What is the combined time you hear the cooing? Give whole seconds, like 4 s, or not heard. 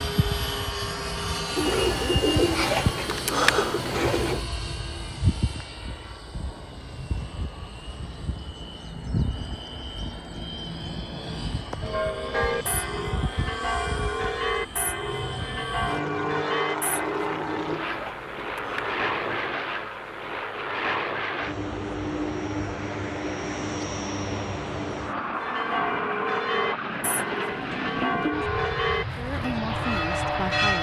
6 s.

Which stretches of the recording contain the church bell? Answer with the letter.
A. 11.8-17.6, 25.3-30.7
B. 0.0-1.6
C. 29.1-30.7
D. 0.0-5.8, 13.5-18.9
A.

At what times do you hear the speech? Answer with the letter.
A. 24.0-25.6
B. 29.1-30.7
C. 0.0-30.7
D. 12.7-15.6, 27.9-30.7
B.